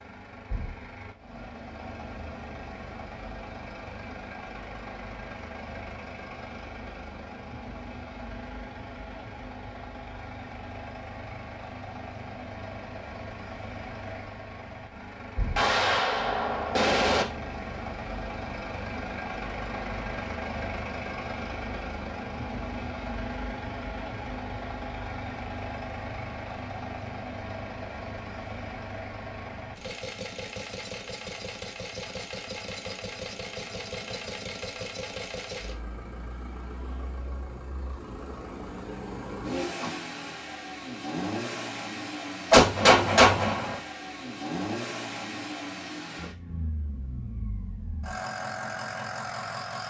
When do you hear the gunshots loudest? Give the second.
43 s.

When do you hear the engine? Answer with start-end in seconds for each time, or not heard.
0.0-49.8.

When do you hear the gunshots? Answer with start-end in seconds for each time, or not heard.
15.6-17.2, 42.5-43.8.